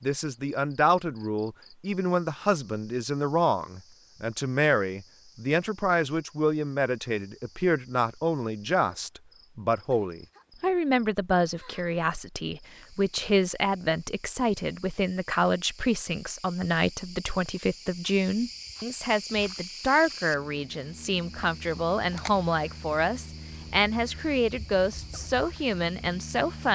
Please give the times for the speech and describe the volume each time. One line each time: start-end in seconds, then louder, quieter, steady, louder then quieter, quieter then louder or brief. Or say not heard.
0.0-26.7 steady.